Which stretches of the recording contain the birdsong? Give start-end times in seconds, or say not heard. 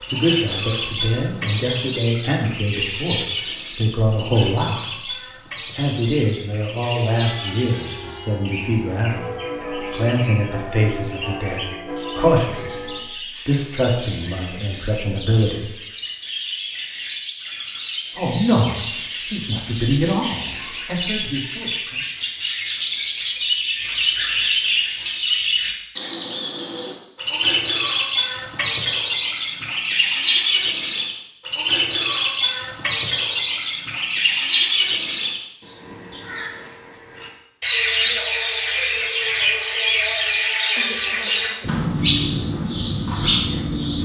0.0-43.9.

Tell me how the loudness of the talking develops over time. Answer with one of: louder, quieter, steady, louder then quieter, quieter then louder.
steady.